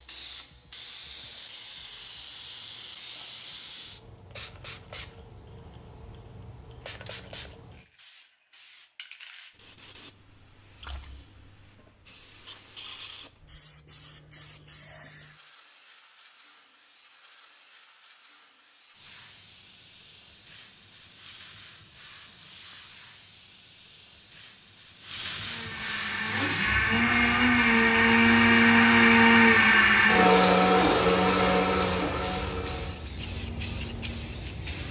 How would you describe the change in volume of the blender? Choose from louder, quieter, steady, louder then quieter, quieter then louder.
louder then quieter.